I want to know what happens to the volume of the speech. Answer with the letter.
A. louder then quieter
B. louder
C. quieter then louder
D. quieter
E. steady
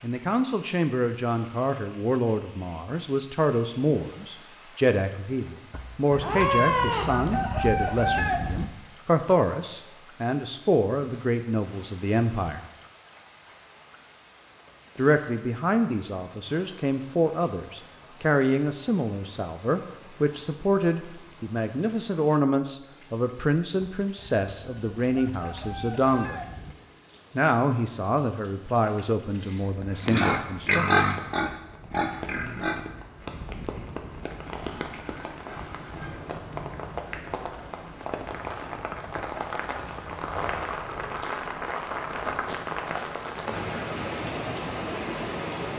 E.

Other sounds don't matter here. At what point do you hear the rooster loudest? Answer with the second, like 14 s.
8 s.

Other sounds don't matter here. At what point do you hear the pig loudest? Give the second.
31 s.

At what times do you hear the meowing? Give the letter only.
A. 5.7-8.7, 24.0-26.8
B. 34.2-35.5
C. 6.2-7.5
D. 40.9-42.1
C.